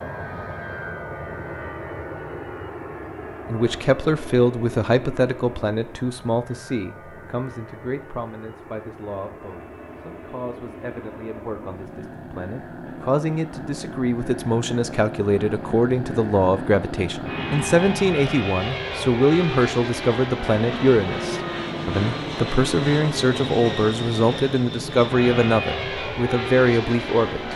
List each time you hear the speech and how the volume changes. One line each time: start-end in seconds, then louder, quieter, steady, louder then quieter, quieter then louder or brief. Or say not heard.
3.5-27.5 quieter then louder.